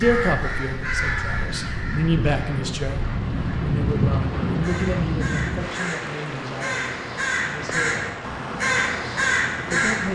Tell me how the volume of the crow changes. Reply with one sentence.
The loudness of the crow goes down, then up.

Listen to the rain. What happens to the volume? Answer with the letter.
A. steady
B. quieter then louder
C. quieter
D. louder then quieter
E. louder
D.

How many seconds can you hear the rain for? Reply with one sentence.
The rain can be heard for 10 seconds in total.